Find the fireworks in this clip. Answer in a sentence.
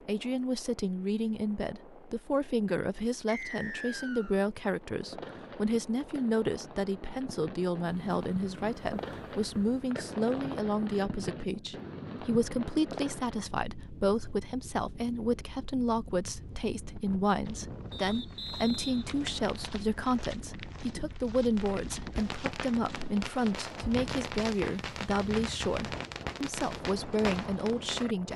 You can hear the fireworks from 4.8 to 13.4 s and from 21.5 to 28.3 s.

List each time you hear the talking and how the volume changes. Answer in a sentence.
You can hear the talking from 0.1 to 28.3 s, at a steady volume.